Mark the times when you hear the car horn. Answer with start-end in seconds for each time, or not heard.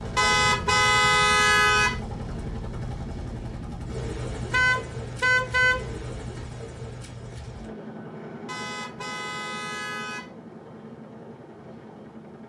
0.1-1.9, 4.5-5.8, 8.4-10.3.